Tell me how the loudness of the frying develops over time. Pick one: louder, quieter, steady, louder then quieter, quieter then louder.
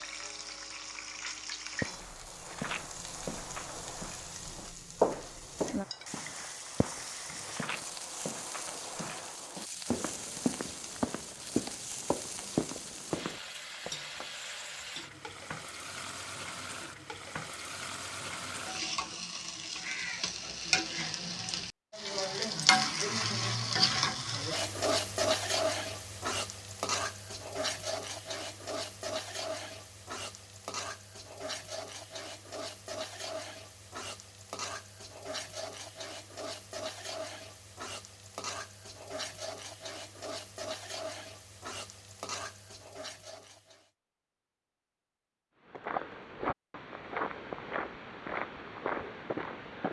louder then quieter.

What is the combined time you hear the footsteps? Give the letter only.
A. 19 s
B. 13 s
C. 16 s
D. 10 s
C.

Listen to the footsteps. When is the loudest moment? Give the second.
5 s.